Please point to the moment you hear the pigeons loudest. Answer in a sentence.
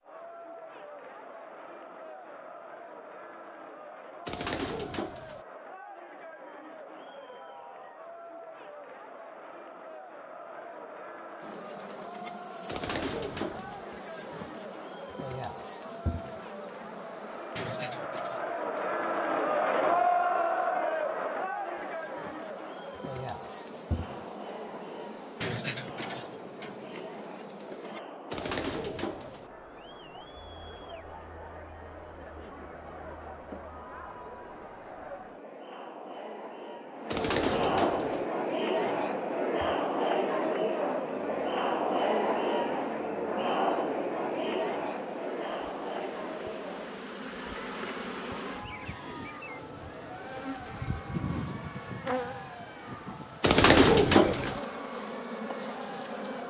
The volume of the pigeons peaks at 54 seconds.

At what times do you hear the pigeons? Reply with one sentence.
You can hear the pigeons from 4.2 to 5.5 s, from 12.7 to 13.8 s, from 28.3 to 29.4 s, from 37.1 to 38.2 s and from 53.4 to 54.6 s.